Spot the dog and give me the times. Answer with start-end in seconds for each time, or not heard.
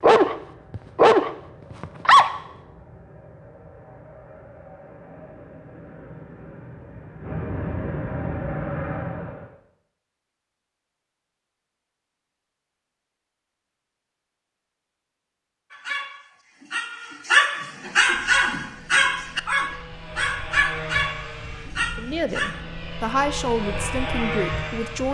0.0-2.3, 15.7-22.6.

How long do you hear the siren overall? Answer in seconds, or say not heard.
not heard.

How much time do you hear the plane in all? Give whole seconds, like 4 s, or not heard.
16 s.